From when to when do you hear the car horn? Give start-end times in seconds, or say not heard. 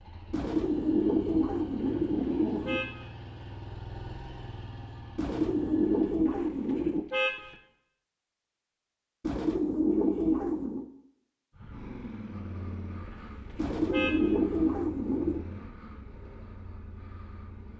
1.8-3.1, 6.2-7.5, 13.1-14.3.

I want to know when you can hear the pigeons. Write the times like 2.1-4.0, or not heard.
0.3-2.8, 5.2-7.0, 9.2-10.9, 13.6-15.4.